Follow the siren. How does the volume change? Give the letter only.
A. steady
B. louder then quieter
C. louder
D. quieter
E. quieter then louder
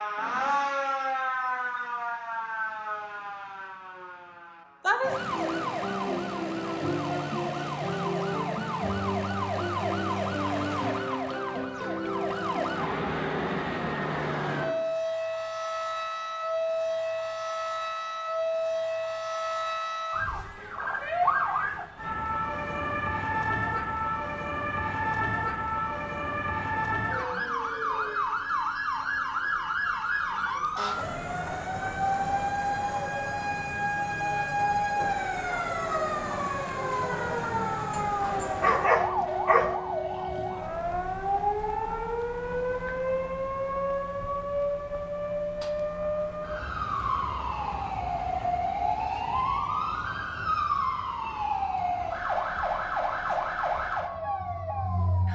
A.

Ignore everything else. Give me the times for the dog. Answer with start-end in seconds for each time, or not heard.
37.9-39.8.